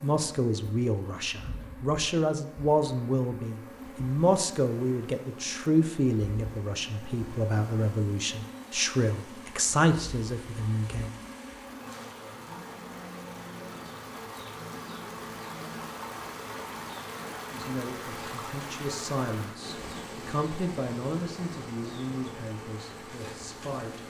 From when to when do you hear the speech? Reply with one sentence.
You can hear the speech from 0.0 to 11.1 s and from 17.5 to 24.0 s.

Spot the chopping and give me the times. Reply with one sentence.
The chopping can't be heard in this clip.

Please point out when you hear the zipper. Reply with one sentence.
You can't hear the zipper here.